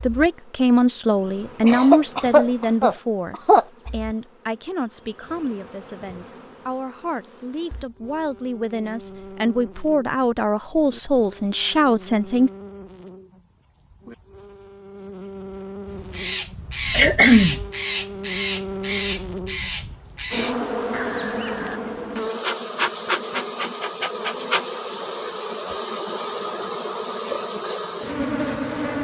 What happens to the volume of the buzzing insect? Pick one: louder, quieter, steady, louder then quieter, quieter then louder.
louder.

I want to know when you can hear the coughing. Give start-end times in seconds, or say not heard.
1.6-3.6, 16.9-17.6.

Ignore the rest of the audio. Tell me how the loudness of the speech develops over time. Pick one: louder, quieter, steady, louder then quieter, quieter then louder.
quieter then louder.